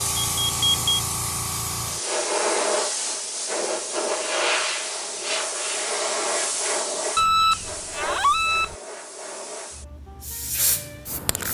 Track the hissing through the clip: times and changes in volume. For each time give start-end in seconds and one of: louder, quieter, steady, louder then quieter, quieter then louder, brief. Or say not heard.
0.0-11.4 quieter.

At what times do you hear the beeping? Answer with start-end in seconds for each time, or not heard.
0.4-1.0, 7.2-8.8.